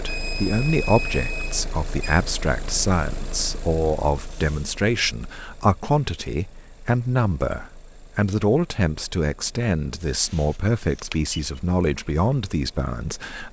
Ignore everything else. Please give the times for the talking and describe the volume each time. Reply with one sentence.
You can hear the talking from 0.0 to 13.4 s, at a steady volume.